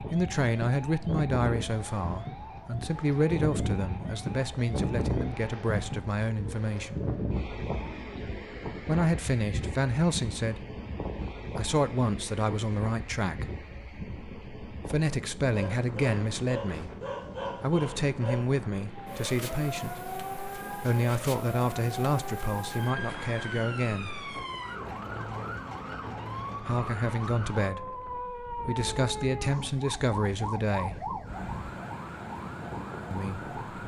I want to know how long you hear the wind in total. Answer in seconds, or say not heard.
34 s.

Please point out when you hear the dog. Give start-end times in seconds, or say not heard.
15.5-18.4.